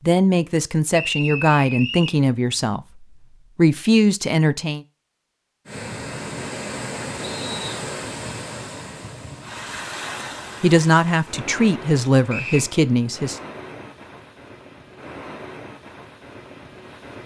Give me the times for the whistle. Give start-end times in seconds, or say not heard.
0.9-2.2, 7.2-7.8, 12.2-12.7.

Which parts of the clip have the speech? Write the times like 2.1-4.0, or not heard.
0.1-4.8, 10.6-13.4.